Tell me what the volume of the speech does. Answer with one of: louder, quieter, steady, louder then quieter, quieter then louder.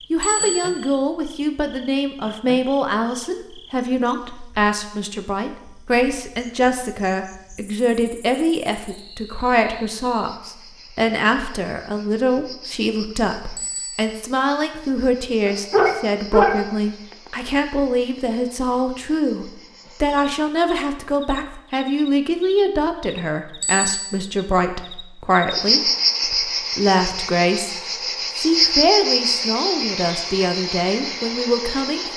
steady.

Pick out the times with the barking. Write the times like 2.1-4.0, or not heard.
15.4-16.7.